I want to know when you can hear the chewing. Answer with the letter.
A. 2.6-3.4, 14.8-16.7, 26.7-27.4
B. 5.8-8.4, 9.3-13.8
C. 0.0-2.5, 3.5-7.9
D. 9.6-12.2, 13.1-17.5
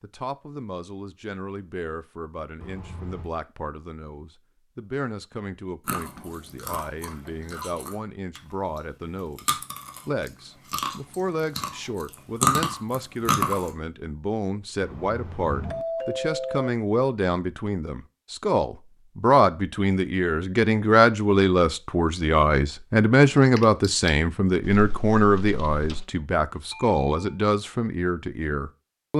B.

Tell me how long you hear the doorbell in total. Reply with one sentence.
You can hear the doorbell for 3 seconds altogether.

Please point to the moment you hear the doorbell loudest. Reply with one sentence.
The loudest moment of the doorbell is at 16 seconds.